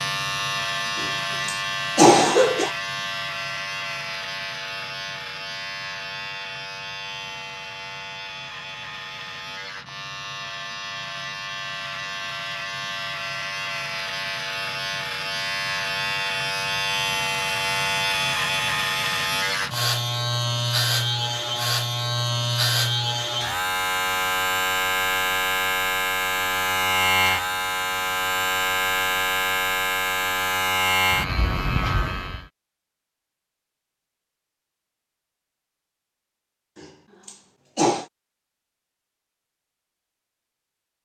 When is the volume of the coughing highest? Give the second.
2 s.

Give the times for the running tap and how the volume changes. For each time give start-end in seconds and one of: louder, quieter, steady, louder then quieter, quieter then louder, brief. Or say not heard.
not heard.